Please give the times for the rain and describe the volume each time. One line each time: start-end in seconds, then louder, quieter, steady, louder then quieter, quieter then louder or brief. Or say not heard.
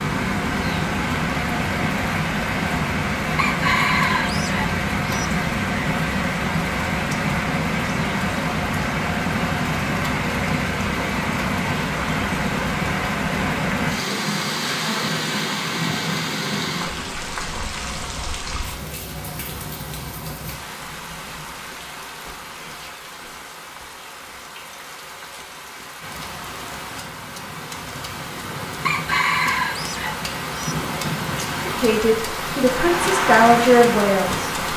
0.0-34.7 quieter then louder.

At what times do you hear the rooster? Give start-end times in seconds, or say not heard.
3.4-5.2, 28.9-30.8.